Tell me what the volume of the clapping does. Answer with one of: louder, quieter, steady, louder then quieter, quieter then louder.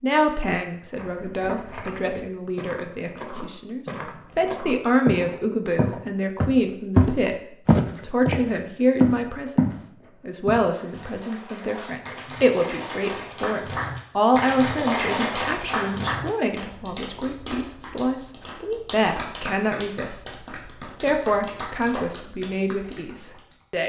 louder then quieter.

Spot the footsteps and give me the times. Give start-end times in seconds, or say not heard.
0.9-9.8, 10.4-11.1.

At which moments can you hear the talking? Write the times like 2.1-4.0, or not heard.
0.0-23.8.